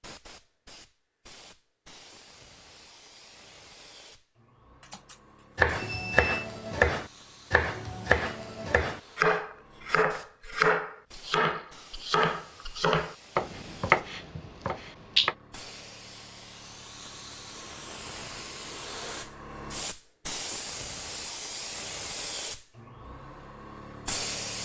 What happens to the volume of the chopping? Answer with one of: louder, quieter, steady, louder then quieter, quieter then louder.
steady.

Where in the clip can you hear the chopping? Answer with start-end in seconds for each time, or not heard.
5.5-15.3.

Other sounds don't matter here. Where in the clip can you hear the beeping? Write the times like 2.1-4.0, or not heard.
4.8-6.5.